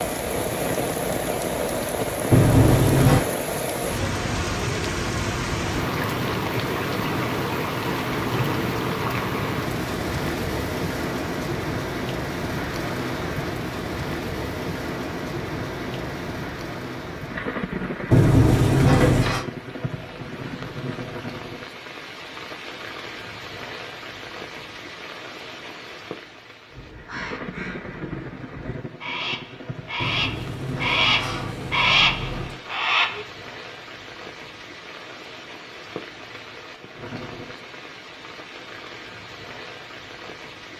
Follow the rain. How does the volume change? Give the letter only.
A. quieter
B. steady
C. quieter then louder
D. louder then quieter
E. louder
A.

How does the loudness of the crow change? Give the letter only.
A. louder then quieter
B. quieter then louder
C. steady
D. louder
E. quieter
D.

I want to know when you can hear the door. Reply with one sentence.
You can hear the door from 2.3 to 3.2 s, from 18.1 to 19.4 s and from 29.9 to 32.6 s.